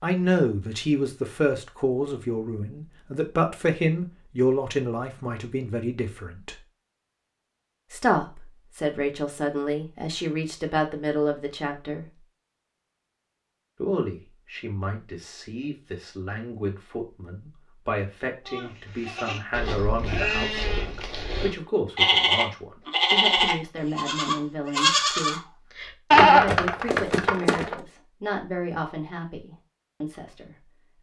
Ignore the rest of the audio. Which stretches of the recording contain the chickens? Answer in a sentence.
The chickens can't be heard in this clip.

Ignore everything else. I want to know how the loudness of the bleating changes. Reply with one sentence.
The volume of the bleating goes up.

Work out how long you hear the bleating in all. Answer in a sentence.
You can hear the bleating for 9 seconds altogether.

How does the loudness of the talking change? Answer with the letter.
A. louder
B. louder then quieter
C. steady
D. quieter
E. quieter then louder
D.